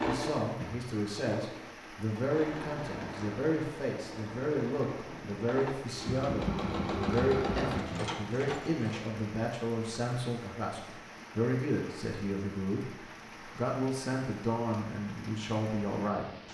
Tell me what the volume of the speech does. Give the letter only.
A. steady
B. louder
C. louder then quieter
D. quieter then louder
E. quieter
A.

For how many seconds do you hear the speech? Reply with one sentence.
You can hear the speech for 16 seconds altogether.